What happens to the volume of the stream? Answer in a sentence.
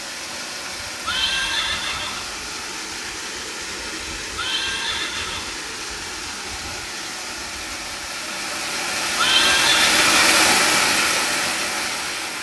The volume of the stream goes up.